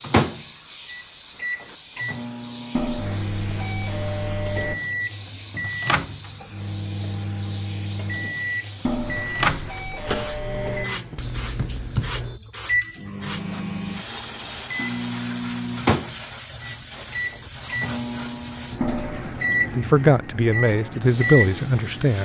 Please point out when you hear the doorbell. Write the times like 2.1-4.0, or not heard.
2.8-4.8, 8.8-10.8, 18.8-19.4.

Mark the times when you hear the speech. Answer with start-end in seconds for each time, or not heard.
19.8-22.1.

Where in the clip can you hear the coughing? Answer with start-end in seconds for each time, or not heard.
not heard.